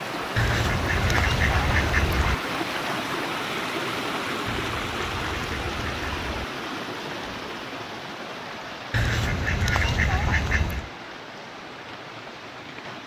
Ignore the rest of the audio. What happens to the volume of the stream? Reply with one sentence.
The volume of the stream goes down.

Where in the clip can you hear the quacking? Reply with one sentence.
You can hear the quacking from 0.3 to 2.4 s, from 4.5 to 6.5 s and from 8.9 to 10.9 s.